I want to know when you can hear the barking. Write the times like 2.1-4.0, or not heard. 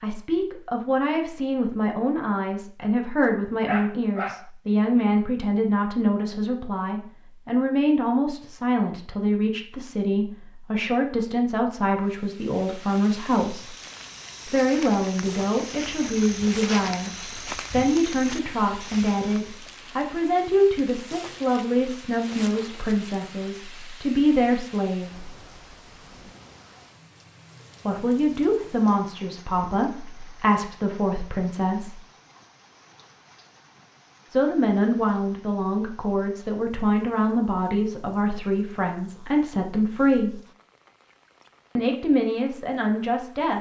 3.6-4.5.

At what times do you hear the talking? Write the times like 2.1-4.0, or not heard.
0.0-13.8, 14.4-25.3, 27.9-32.0, 34.3-40.4, 41.8-43.5.